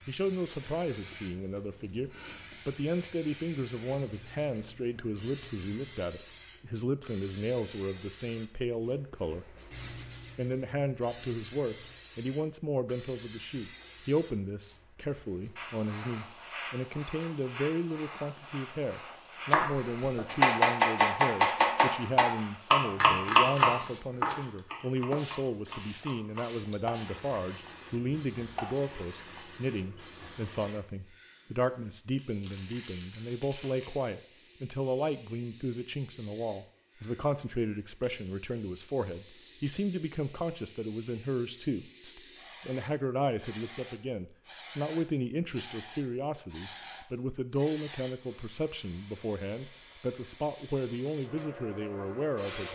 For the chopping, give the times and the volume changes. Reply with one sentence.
You can hear the chopping from 19.5 to 29.4 s, getting quieter.